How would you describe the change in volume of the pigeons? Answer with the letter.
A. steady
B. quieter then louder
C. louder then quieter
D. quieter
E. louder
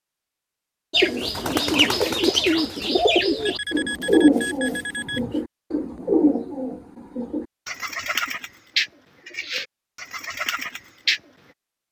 D.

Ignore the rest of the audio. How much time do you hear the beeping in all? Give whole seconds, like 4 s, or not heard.
2 s.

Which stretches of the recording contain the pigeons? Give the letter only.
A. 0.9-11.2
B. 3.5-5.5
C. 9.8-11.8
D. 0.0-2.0
A.